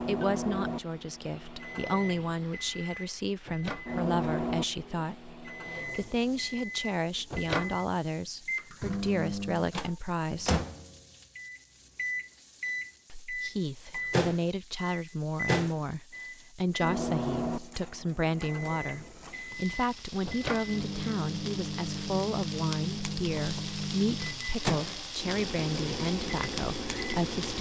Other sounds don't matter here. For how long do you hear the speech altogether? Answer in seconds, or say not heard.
25 s.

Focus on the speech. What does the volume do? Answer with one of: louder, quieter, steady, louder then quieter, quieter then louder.
steady.